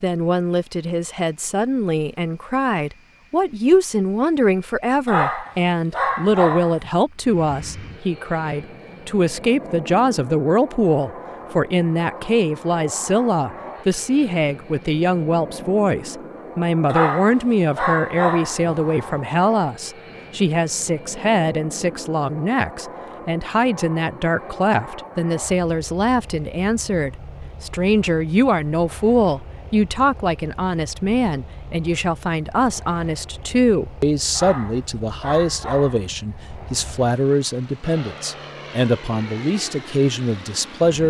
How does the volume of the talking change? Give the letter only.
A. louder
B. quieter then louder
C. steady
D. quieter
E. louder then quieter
C.